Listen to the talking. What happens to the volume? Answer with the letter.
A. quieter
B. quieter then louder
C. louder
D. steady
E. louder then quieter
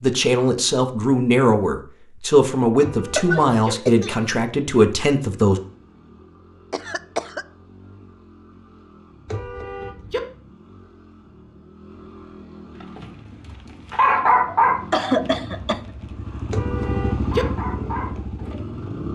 D.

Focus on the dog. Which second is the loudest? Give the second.
14 s.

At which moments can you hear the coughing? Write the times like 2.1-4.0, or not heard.
3.1-4.2, 6.7-7.5, 14.7-15.8.